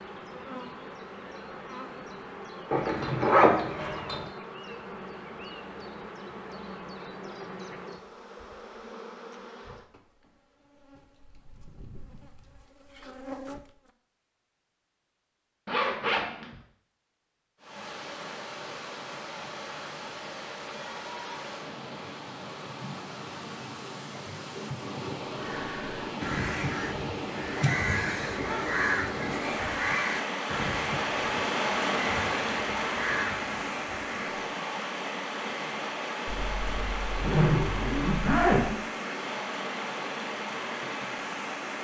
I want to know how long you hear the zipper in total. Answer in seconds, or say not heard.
5 s.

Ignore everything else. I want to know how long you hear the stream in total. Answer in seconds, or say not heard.
24 s.